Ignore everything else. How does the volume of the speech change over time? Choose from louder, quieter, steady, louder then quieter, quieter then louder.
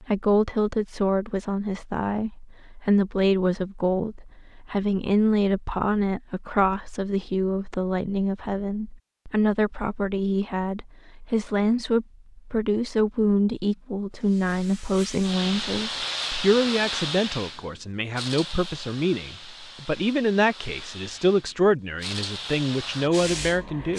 steady.